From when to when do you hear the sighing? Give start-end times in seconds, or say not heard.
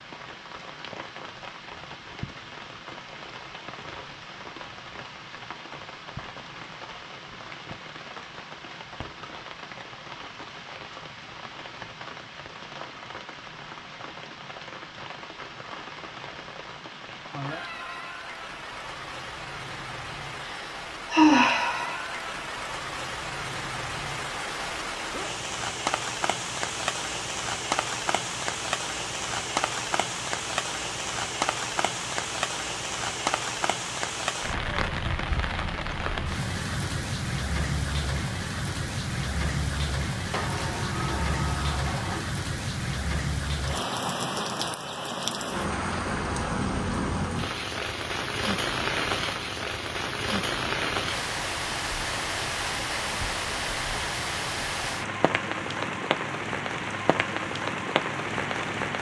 20.4-21.9.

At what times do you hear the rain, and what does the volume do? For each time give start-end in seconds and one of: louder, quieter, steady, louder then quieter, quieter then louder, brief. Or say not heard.
0.0-58.9 louder.